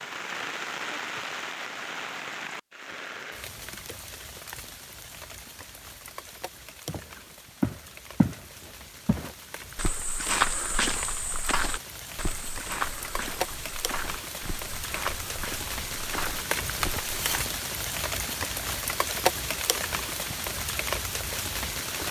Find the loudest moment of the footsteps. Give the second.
10 s.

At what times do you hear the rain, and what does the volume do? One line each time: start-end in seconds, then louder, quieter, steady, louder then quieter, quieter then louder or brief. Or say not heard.
0.0-22.0 quieter then louder.